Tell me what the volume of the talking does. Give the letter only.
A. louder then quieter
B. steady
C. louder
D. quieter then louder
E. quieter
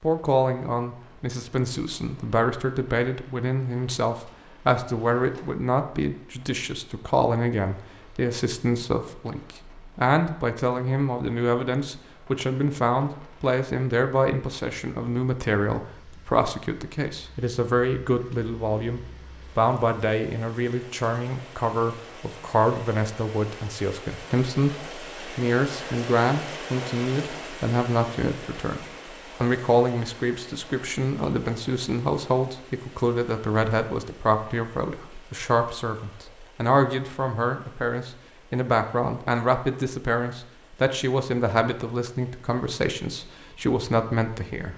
B.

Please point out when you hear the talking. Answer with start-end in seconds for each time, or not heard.
0.0-28.8, 29.4-44.7.